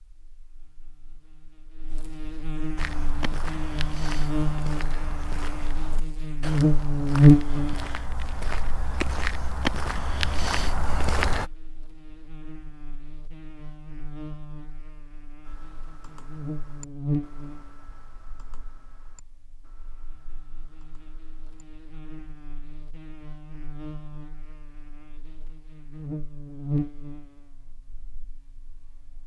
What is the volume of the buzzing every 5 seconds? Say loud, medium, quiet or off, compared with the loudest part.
quiet, loud, quiet, quiet, quiet, quiet.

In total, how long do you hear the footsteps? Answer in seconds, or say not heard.
9 s.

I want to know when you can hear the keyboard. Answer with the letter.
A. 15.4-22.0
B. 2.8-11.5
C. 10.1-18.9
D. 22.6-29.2
A.